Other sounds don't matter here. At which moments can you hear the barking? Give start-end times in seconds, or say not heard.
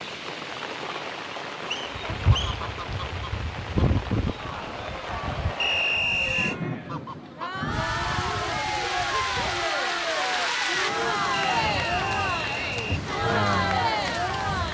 not heard.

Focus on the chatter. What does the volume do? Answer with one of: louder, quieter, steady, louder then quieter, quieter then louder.
louder.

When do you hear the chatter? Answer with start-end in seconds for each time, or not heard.
4.3-14.6.